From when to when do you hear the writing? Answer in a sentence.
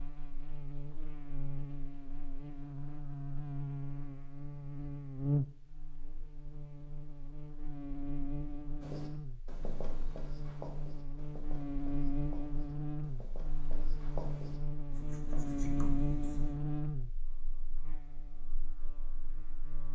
You can hear the writing from 8.8 to 16.6 s.